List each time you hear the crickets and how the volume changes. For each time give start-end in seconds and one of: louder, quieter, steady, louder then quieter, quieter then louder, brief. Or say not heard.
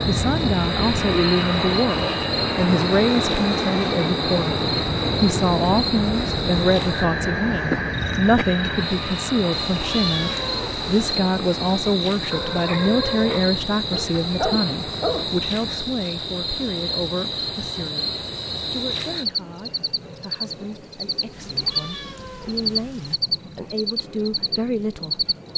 0.0-25.5 steady.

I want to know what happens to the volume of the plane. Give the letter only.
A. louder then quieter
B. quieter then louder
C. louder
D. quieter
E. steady
D.